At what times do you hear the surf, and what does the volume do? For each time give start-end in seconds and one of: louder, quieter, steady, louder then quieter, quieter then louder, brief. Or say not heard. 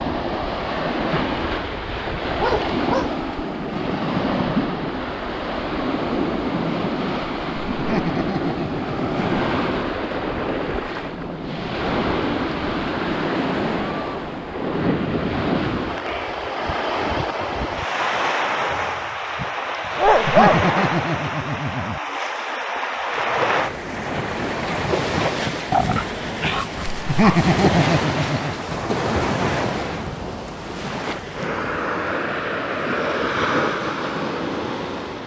0.0-35.2 steady.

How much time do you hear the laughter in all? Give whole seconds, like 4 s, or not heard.
5 s.